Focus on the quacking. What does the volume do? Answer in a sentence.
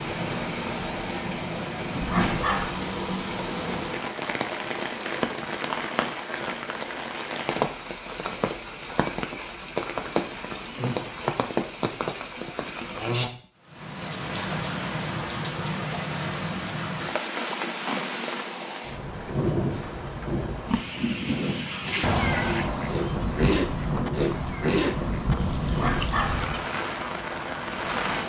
The volume of the quacking goes down.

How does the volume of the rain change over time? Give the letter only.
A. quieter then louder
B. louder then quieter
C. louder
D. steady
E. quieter
D.